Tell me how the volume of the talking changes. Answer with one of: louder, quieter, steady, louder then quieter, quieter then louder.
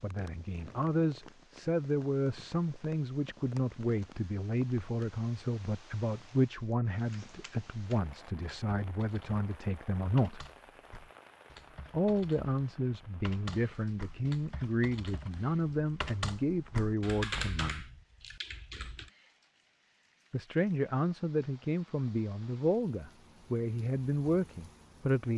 steady.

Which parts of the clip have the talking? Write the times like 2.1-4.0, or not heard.
0.0-10.4, 11.9-17.9, 20.3-25.3.